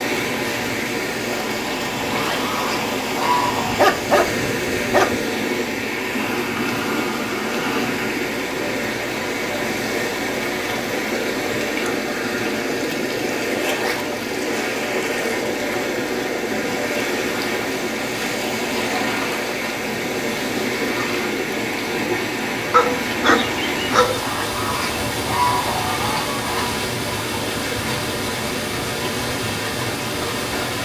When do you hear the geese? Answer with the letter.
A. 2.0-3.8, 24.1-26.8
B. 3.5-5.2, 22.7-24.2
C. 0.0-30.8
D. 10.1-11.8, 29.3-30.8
A.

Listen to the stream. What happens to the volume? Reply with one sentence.
The volume of the stream stays about the same.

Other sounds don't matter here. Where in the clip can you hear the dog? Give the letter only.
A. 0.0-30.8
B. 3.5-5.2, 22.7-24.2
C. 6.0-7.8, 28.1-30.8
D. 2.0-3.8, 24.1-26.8
B.